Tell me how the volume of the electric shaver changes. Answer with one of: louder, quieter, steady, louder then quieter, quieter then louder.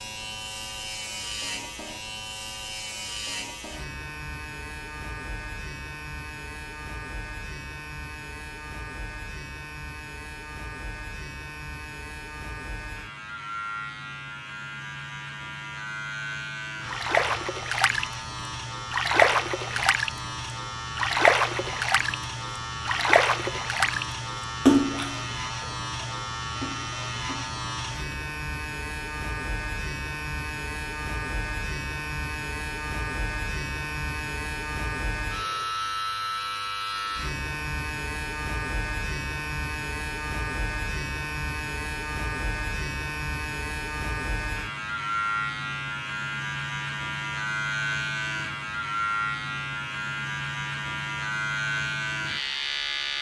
louder.